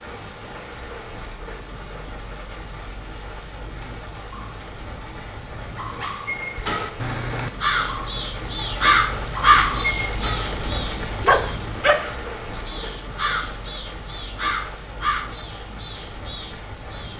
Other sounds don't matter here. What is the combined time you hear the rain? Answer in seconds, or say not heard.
17 s.